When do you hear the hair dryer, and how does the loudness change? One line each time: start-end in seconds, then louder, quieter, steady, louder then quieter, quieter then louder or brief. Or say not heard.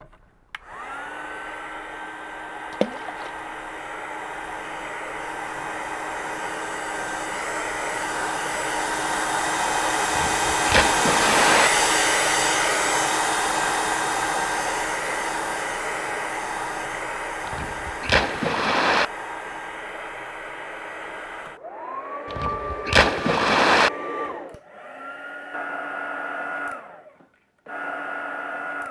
0.0-28.8 louder then quieter.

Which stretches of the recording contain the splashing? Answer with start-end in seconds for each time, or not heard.
2.7-3.3, 10.1-11.7, 17.4-19.1, 22.3-23.9.